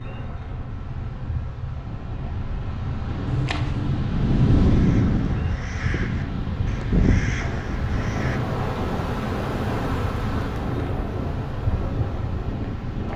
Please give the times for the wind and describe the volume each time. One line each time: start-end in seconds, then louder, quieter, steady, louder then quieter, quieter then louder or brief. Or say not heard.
0.0-13.1 louder then quieter.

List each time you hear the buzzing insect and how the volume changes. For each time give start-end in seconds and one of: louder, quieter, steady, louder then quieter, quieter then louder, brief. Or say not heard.
0.0-13.1 louder.